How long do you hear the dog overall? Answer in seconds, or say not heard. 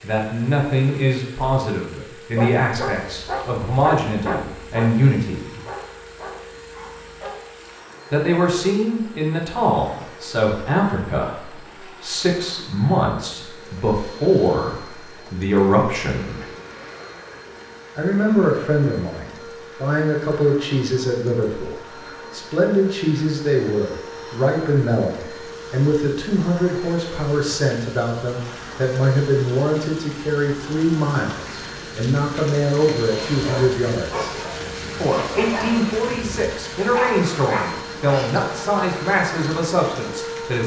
11 s.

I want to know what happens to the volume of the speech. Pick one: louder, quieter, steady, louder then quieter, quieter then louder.
steady.